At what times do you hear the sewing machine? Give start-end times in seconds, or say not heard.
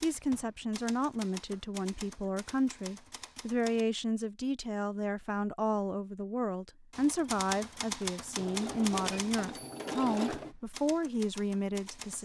8.3-10.6.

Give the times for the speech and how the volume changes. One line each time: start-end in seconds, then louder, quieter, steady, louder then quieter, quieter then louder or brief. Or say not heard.
0.0-12.2 steady.